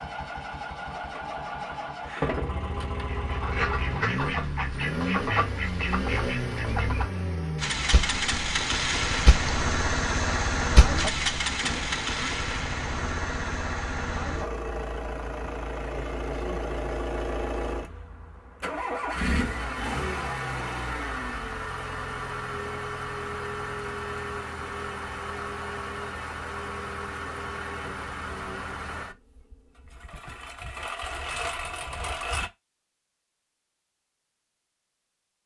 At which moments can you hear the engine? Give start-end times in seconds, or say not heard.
0.0-32.5.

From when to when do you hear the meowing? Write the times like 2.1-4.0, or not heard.
not heard.